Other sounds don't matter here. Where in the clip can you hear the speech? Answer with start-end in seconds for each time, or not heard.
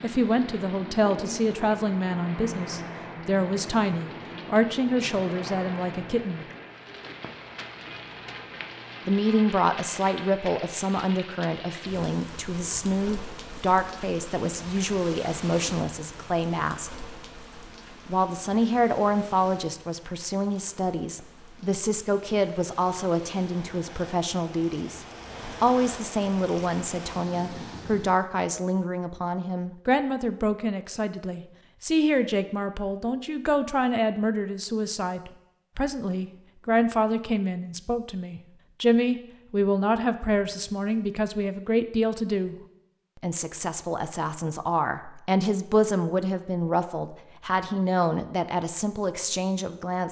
0.0-6.5, 9.1-16.9, 18.1-42.6, 43.2-50.0.